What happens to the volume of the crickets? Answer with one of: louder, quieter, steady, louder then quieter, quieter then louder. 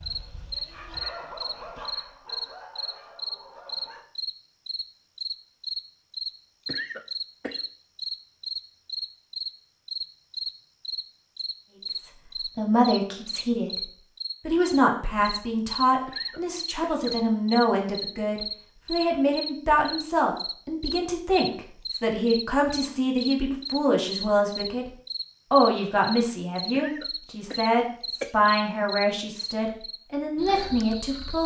steady.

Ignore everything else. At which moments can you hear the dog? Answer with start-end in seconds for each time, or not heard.
0.0-4.0.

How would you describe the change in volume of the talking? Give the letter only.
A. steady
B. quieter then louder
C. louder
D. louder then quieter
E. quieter
A.